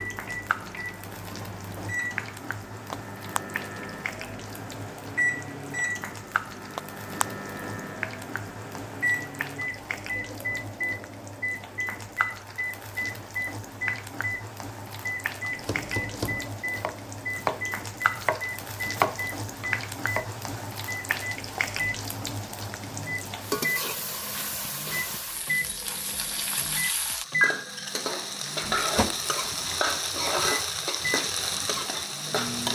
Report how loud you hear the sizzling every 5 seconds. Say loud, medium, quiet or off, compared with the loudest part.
medium, medium, medium, medium, medium, loud, loud.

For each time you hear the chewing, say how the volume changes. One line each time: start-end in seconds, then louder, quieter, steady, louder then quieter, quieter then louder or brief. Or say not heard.
not heard.